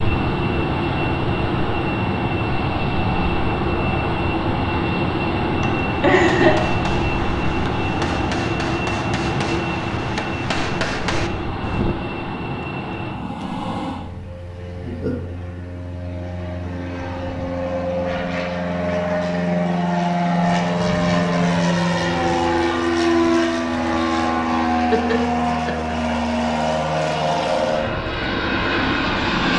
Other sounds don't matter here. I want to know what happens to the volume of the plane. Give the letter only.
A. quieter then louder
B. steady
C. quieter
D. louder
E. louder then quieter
A.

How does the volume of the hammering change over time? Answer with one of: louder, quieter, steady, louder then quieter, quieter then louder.
louder.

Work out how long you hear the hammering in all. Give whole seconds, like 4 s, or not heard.
6 s.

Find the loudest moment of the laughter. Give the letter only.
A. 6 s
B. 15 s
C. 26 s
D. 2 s
A.